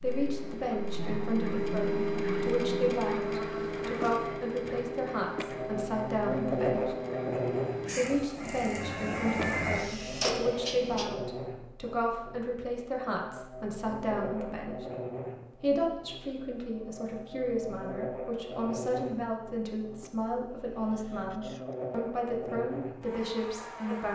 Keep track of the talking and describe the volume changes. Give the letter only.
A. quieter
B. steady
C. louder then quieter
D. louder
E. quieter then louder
B.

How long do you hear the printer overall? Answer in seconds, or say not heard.
11 s.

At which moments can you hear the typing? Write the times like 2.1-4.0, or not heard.
not heard.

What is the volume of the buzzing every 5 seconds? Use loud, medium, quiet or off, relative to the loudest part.
medium, loud, medium, medium, medium.